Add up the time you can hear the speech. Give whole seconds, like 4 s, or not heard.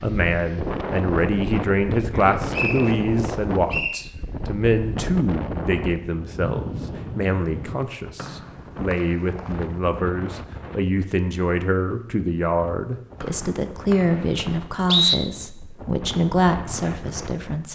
18 s.